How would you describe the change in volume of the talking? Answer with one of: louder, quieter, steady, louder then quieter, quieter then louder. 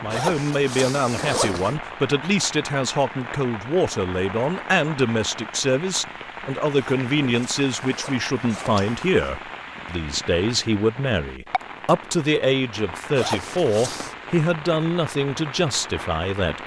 steady.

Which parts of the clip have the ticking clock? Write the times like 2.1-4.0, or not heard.
not heard.